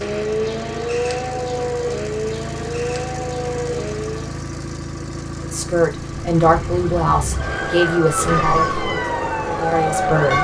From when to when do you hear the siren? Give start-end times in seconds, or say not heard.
0.0-4.5, 6.0-10.3.